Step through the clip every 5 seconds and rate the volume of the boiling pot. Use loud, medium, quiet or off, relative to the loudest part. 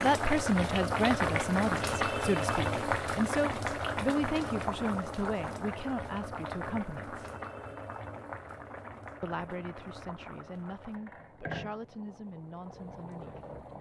loud, medium, quiet.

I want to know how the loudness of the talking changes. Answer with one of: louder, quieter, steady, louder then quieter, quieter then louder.
quieter.